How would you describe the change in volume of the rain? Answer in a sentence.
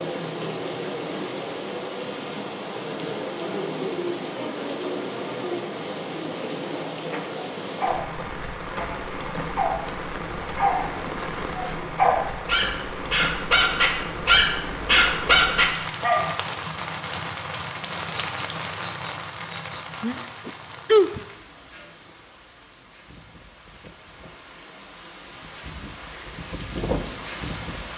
The loudness of the rain goes down.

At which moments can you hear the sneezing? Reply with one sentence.
The sneezing can be heard from 20.0 to 21.2 s.